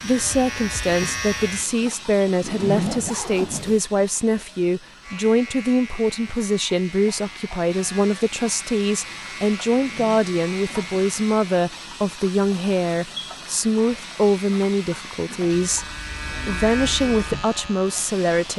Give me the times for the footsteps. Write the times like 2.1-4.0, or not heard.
not heard.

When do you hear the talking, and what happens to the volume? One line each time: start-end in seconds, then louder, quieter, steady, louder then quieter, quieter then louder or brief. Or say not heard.
0.0-18.5 steady.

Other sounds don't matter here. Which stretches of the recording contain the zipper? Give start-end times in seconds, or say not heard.
2.4-3.8, 9.7-11.1.